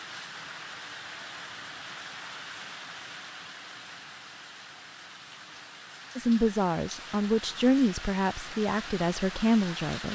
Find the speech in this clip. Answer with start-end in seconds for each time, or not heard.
6.2-10.0.